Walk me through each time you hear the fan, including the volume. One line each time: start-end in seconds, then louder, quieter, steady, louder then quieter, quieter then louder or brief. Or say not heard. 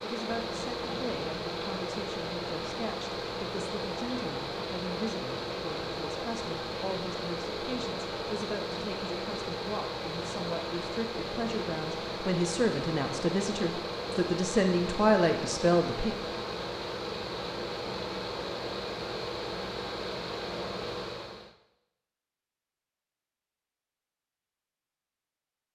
0.0-21.6 steady.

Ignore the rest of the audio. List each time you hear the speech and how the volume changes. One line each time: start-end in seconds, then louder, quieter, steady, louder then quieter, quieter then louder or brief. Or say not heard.
0.0-16.1 louder.